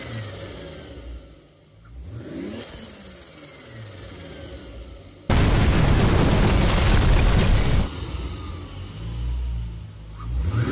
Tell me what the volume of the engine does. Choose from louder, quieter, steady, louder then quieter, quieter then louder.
louder then quieter.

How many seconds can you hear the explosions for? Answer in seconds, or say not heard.
3 s.